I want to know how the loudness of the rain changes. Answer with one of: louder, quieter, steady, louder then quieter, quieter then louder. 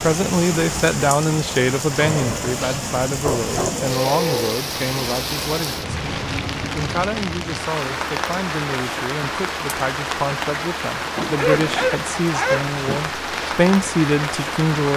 steady.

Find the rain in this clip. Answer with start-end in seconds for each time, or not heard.
0.0-14.9.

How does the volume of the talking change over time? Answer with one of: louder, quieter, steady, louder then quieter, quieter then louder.
quieter then louder.